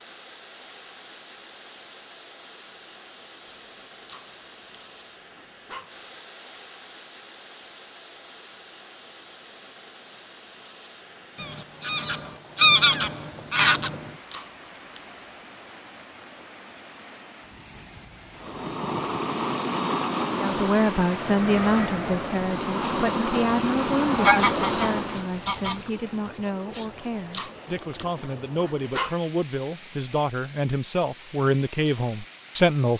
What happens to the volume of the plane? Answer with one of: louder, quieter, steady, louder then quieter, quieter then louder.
quieter then louder.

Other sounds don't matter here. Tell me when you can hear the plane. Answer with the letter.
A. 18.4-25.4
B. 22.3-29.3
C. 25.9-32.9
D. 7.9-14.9
A.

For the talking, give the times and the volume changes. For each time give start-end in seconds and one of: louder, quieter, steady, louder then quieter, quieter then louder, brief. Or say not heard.
20.4-32.9 quieter then louder.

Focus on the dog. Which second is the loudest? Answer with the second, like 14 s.
29 s.